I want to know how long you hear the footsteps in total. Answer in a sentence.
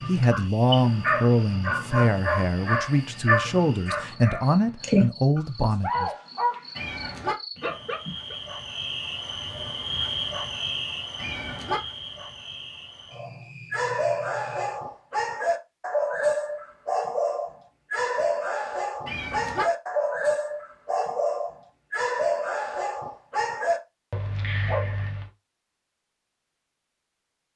The footsteps can't be heard in this clip.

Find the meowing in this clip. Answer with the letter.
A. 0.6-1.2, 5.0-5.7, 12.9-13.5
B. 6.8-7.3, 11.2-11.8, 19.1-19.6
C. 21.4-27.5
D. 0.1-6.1
B.